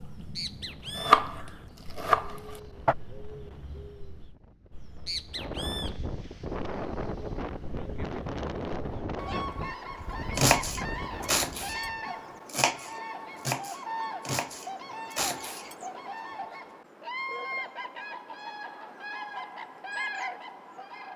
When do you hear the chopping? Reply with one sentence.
You can hear the chopping from 0.0 to 3.0 s, from 10.3 to 11.8 s and from 12.4 to 15.8 s.